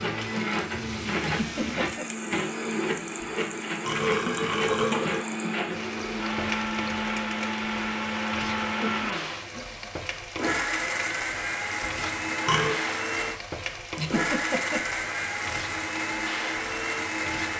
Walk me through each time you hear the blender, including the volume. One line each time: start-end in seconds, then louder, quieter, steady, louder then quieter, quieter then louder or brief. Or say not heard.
0.0-17.5 steady.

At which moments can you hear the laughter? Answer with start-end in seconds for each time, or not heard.
1.2-2.0, 8.7-9.8, 13.9-14.8.